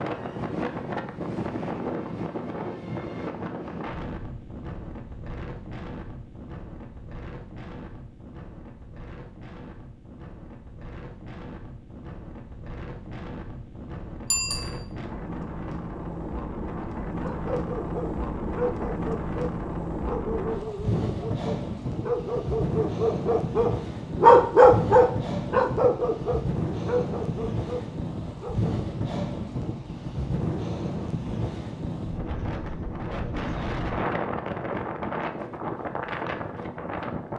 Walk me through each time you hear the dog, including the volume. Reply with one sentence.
The dog can be heard from 17.2 to 28.8 s, getting louder then quieter.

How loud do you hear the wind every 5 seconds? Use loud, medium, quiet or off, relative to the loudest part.
loud, medium, medium, loud, loud, loud, loud, loud.